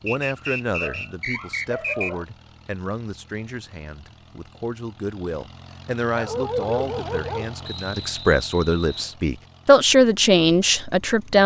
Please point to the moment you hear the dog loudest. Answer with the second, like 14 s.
7 s.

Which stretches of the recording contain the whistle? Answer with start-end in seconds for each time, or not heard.
0.1-2.1, 7.6-9.2.